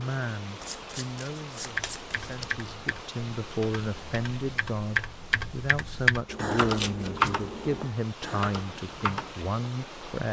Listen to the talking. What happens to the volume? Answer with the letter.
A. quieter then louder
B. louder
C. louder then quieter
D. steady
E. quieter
B.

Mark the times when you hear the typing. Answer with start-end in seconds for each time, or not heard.
1.6-9.4.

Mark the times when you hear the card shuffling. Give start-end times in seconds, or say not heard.
0.6-2.5, 6.2-7.9.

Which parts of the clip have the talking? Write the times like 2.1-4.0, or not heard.
0.0-10.2.